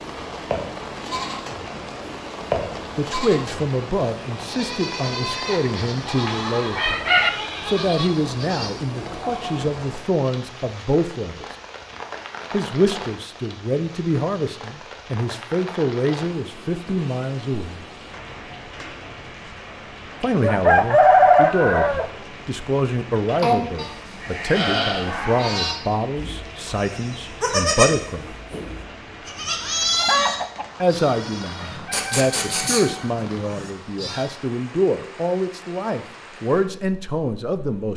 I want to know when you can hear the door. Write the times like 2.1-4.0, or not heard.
not heard.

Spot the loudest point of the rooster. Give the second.
21 s.